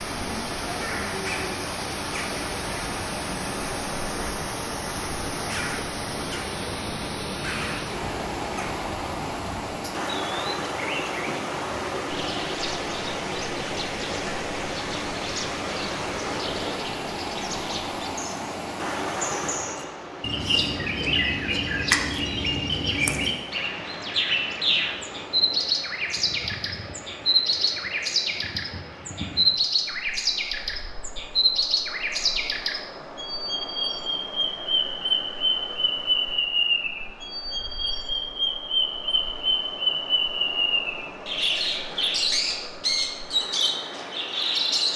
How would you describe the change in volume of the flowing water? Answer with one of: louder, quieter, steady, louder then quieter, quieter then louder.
quieter.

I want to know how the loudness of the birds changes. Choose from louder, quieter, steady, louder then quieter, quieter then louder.
louder.